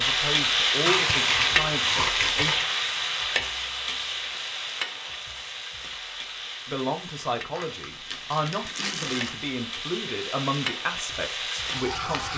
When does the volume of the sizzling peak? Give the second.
1 s.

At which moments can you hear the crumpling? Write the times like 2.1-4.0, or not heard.
0.8-2.7, 7.5-9.4.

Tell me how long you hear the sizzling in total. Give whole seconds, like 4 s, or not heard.
12 s.